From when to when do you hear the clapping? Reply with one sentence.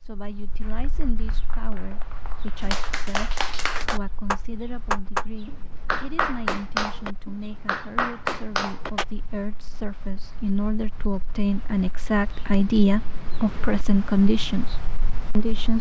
The clapping can be heard from 0.6 to 9.1 s.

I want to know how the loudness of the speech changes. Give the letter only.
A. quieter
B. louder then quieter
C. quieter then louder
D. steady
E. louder
E.